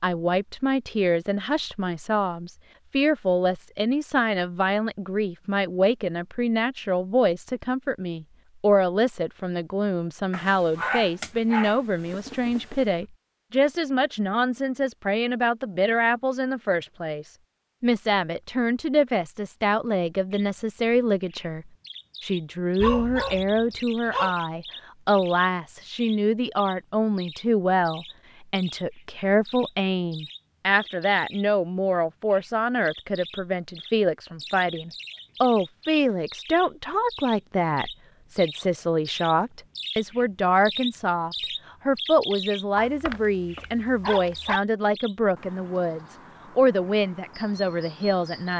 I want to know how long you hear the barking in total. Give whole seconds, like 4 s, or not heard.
6 s.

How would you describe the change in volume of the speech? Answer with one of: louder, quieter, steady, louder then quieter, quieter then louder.
steady.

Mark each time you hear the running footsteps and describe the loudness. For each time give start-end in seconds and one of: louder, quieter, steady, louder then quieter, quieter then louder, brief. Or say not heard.
not heard.